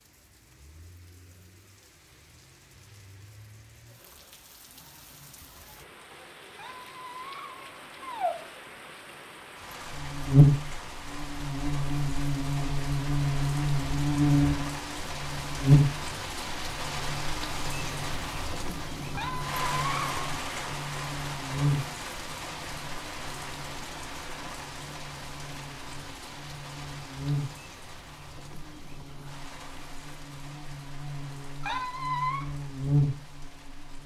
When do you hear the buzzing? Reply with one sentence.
You can hear the buzzing from 9.8 to 34.0 s.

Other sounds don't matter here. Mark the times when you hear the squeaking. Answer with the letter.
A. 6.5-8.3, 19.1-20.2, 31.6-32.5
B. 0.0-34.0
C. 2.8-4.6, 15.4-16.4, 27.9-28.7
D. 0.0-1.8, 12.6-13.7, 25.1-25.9
A.